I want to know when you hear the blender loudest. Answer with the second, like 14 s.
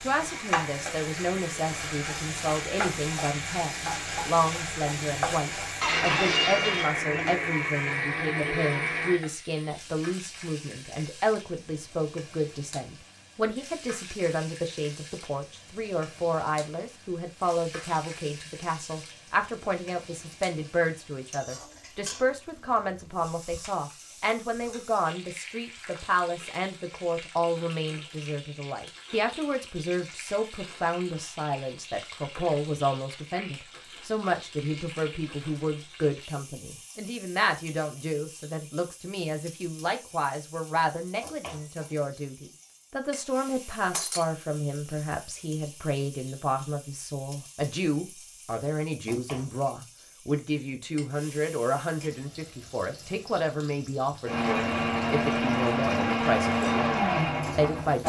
57 s.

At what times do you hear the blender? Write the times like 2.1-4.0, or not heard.
0.1-9.2, 54.2-58.0.